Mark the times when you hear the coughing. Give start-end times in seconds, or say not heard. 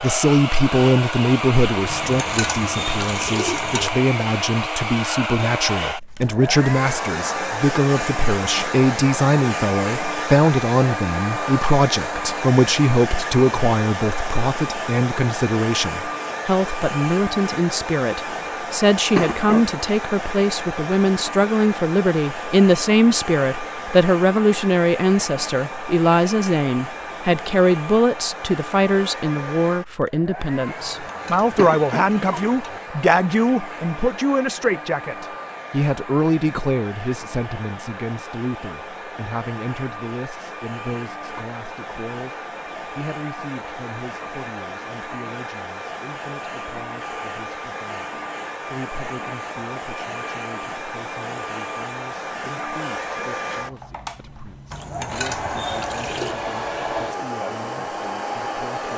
19.1-19.7, 31.6-32.5.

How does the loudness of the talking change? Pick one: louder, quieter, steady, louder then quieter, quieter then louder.
quieter.